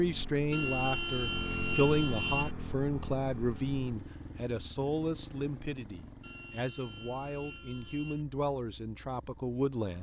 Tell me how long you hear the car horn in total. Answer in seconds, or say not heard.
4 s.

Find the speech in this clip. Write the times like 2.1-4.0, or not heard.
0.0-9.9.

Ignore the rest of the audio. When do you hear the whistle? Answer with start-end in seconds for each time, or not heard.
not heard.